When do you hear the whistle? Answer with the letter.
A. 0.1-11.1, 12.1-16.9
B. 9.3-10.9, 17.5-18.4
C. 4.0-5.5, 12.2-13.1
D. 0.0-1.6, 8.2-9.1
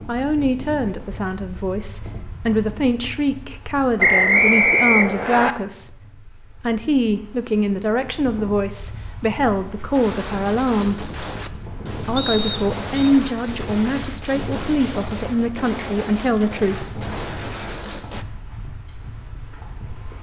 C.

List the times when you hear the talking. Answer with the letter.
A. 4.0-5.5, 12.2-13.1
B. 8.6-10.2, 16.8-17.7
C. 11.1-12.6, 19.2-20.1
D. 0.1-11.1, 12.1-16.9
D.